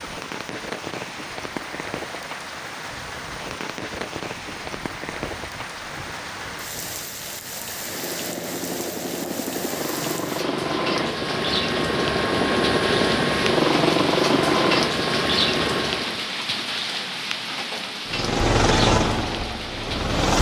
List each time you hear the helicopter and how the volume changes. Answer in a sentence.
You can hear the helicopter from 0.0 to 16.3 s, getting louder; and briefly from 18.1 to 20.3 s.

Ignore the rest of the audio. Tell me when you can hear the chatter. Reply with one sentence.
The chatter can't be heard in this clip.